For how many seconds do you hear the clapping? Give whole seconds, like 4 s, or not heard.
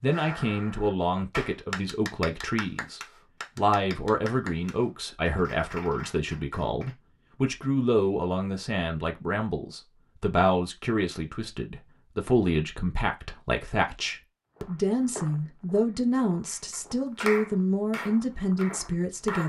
10 s.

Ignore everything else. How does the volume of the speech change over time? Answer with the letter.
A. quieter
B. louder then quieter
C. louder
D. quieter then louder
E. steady
E.